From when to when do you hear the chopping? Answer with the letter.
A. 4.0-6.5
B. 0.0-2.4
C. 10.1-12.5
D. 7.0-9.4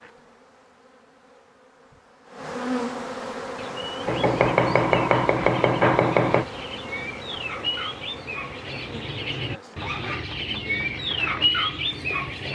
A.